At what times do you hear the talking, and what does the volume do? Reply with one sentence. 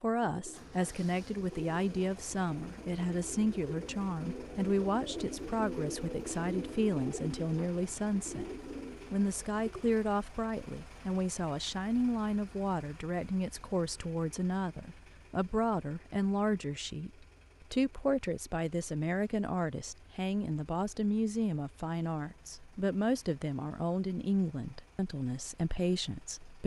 You can hear the talking from 0.0 to 26.6 s, at a steady volume.